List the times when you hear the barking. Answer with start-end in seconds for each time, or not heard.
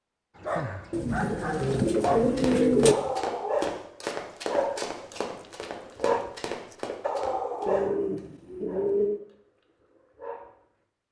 0.3-10.6.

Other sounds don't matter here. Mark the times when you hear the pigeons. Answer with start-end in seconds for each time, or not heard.
0.9-3.0, 7.7-9.2.